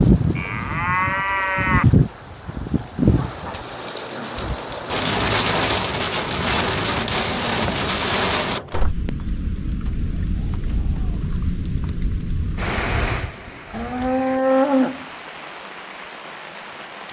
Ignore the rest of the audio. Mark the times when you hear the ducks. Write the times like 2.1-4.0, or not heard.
not heard.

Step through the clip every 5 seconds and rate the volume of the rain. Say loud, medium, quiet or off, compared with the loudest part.
loud, loud, medium, quiet.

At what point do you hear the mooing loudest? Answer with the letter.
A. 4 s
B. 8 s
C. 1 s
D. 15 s
D.